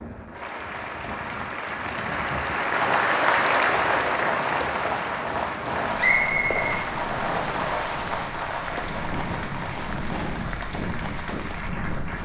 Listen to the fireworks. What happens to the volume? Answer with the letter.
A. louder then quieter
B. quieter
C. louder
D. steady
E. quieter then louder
B.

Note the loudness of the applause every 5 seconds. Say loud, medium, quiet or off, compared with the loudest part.
loud, medium, medium.